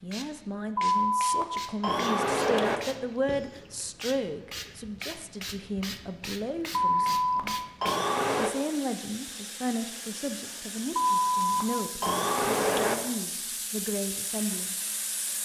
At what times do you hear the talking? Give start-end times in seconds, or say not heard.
0.0-7.5, 8.3-14.8.